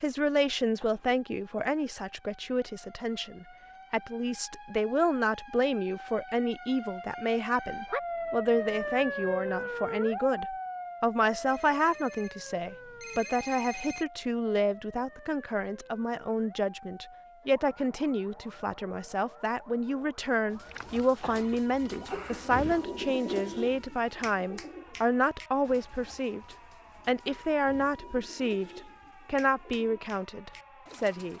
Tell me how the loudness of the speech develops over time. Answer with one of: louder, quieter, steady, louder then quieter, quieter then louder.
steady.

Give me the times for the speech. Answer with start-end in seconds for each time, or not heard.
0.0-31.3.